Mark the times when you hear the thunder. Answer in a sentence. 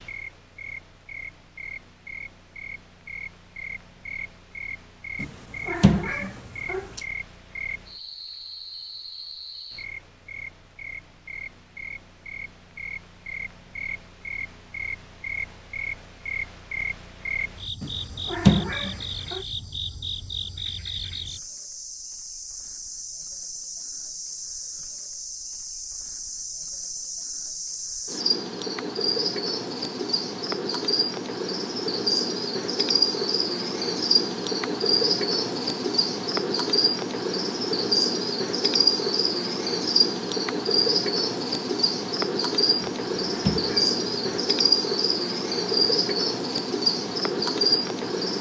The thunder can't be heard in this clip.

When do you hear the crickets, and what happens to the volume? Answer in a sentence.
The crickets can be heard from 0.0 to 48.3 s, getting louder.